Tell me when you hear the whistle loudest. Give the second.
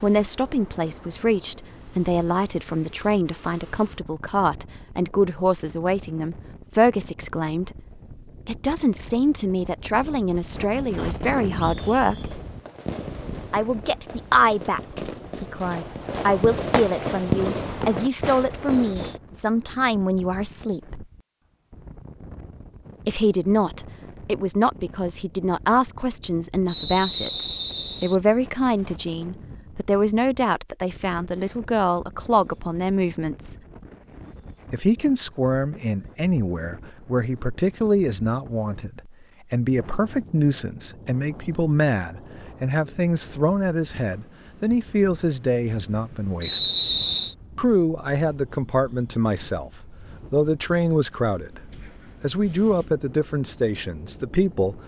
47 s.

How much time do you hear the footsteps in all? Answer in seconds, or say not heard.
not heard.